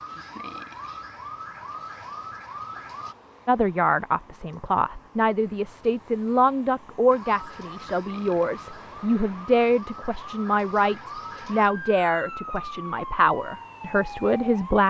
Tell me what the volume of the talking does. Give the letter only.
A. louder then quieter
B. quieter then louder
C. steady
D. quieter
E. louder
C.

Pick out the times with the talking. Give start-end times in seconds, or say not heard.
3.5-14.8.